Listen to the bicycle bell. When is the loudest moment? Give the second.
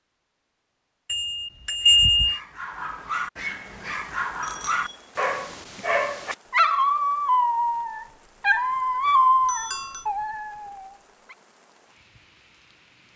2 s.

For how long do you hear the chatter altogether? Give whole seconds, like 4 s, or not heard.
not heard.